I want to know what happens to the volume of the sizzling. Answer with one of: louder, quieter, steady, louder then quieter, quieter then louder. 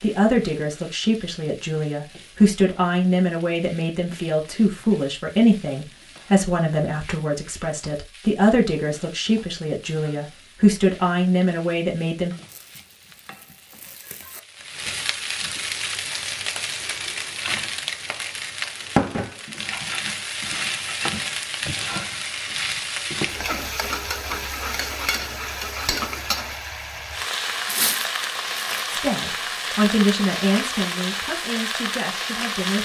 louder.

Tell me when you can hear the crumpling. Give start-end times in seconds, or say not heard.
12.4-14.4, 27.6-28.9.